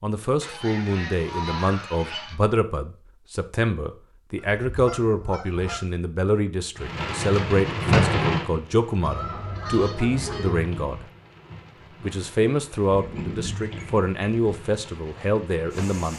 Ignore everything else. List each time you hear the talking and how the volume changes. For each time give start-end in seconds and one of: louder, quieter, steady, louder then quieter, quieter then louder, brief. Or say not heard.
0.0-11.1 steady
12.0-16.1 quieter then louder.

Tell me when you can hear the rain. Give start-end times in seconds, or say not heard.
6.8-16.1.